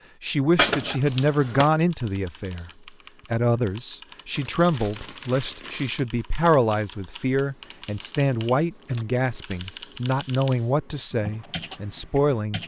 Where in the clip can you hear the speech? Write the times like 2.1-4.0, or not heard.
0.2-2.7, 3.3-12.6.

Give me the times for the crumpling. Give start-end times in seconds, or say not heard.
0.6-1.8, 4.3-6.0, 9.3-9.8.